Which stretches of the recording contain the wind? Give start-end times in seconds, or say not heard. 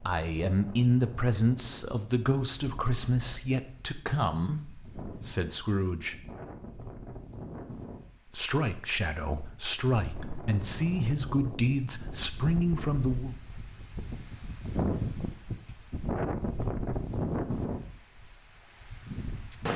0.0-19.7.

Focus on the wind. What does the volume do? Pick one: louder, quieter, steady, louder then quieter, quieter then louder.
louder.